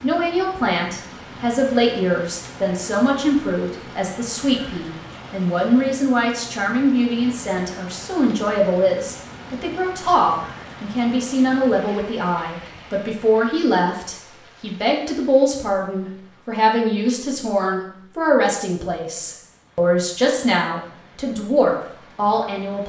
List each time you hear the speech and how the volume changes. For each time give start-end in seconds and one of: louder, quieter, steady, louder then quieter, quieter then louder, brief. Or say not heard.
0.0-22.8 steady.